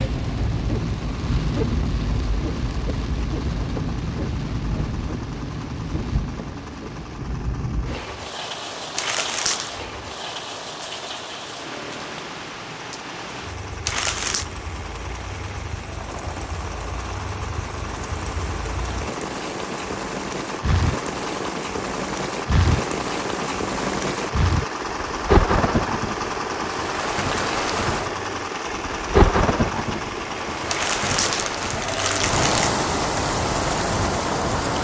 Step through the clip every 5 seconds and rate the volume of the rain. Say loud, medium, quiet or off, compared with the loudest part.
loud, medium, medium, medium, loud, loud, loud.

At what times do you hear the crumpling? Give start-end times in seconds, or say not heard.
8.9-9.7, 13.8-14.4, 30.7-32.8.